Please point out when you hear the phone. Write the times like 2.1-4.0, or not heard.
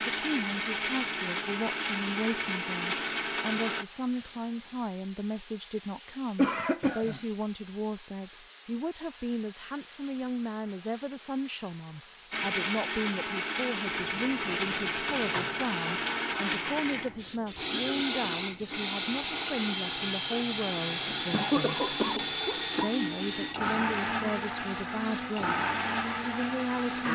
not heard.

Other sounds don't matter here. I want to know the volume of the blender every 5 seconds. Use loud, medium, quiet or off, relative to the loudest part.
loud, off, loud, loud, loud, loud.